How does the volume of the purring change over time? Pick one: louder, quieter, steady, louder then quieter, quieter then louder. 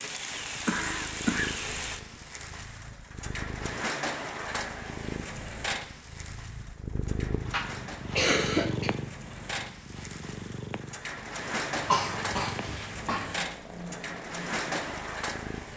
louder then quieter.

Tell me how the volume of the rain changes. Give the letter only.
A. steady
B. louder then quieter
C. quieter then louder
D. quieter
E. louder
C.